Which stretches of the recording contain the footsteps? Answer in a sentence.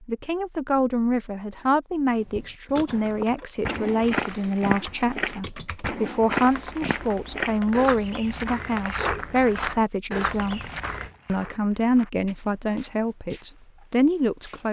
You can hear the footsteps from 2.9 to 14.6 s.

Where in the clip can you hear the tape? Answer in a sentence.
The tape can't be heard in this clip.